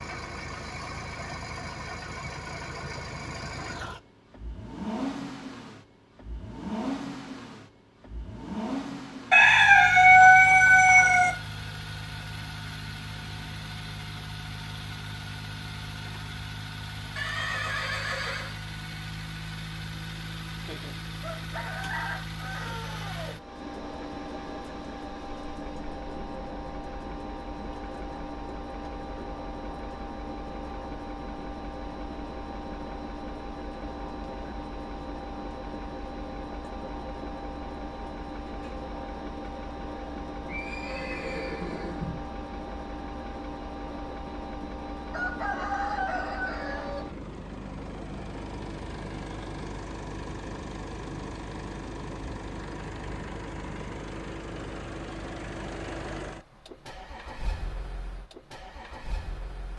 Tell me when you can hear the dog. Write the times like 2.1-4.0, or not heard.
not heard.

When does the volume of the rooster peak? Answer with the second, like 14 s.
10 s.